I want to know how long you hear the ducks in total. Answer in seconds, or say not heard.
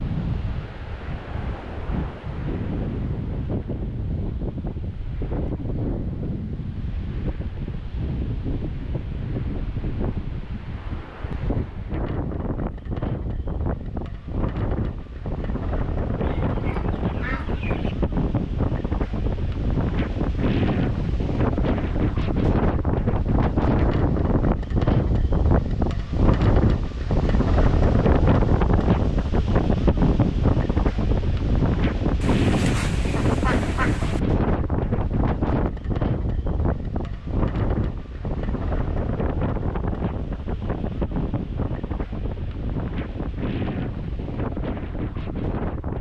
4 s.